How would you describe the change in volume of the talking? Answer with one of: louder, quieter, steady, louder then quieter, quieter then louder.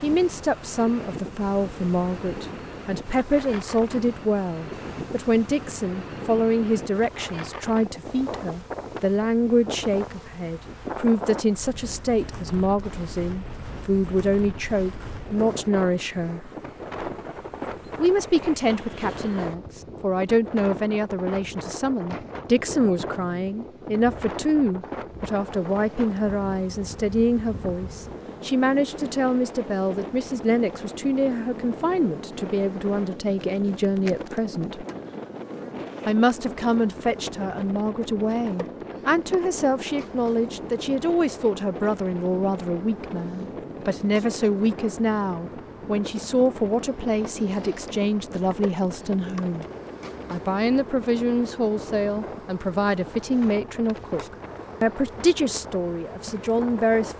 steady.